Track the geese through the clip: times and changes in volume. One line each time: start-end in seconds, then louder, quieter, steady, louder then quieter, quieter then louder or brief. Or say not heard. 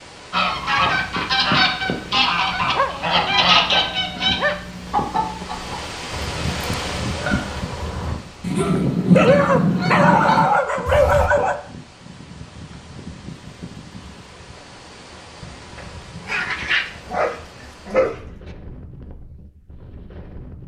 0.3-11.3 quieter then louder.